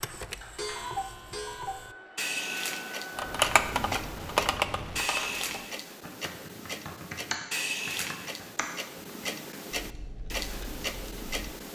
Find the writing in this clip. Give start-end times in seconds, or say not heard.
not heard.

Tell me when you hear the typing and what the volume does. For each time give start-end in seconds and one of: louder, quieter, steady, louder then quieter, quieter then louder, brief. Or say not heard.
3.1-11.5 quieter.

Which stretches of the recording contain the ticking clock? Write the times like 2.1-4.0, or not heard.
0.0-11.7.